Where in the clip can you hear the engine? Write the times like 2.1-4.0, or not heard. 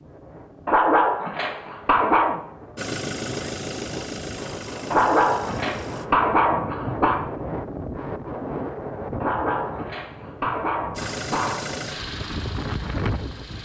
2.8-6.1, 10.9-13.6.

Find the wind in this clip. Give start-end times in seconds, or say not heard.
0.0-13.6.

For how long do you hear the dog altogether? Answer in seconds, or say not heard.
7 s.